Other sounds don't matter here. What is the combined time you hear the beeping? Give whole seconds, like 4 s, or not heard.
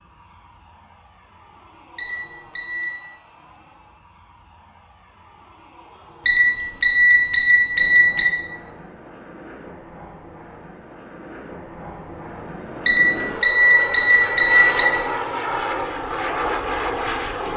5 s.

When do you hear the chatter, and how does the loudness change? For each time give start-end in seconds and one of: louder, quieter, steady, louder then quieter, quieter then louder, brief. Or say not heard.
not heard.